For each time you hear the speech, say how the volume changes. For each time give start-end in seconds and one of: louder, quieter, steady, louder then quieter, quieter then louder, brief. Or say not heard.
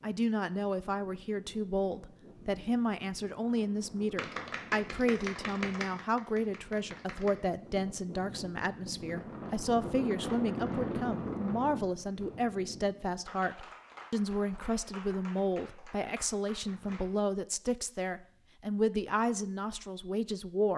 0.0-20.7 steady.